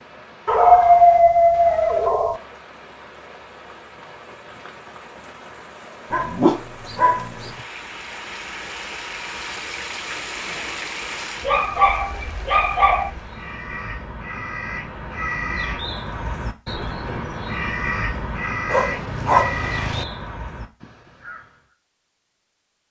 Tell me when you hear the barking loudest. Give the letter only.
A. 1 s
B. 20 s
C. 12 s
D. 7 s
A.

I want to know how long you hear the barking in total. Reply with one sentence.
The barking can be heard for 6 seconds in total.